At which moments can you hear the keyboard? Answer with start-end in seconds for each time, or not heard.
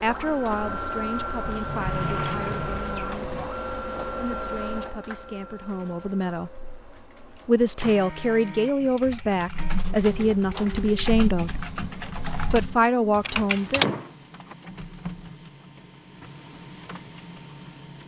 8.8-13.8.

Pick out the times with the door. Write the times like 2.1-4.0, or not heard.
1.4-3.4, 7.3-8.1, 13.8-14.6.